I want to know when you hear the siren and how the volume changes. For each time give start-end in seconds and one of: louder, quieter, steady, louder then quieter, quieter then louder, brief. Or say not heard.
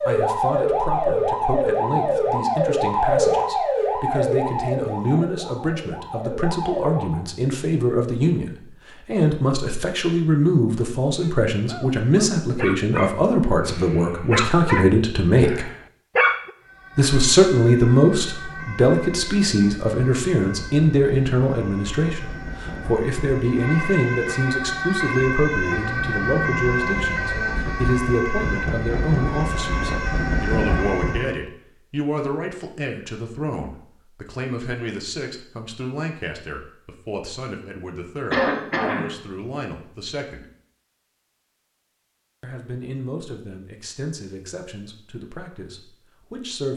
0.0-7.2 quieter
16.6-31.4 louder.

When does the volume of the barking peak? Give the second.
16 s.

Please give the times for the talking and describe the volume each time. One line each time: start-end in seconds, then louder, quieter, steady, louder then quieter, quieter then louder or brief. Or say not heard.
0.0-15.7 louder
16.9-40.5 quieter
42.4-46.7 quieter.